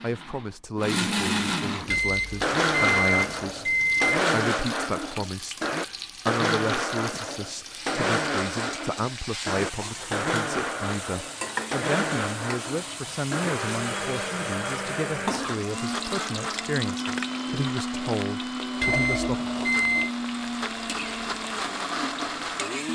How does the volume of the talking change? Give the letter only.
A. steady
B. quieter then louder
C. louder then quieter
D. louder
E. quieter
A.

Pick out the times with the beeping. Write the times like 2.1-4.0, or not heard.
1.9-4.2, 18.8-20.1.